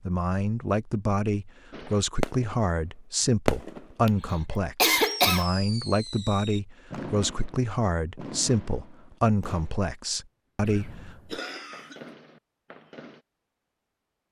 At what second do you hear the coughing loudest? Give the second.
5 s.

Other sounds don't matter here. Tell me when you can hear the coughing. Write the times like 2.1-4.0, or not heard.
4.0-5.5, 10.7-12.0.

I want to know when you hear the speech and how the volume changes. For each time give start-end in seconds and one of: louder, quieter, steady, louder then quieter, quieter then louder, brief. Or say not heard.
0.1-11.1 steady.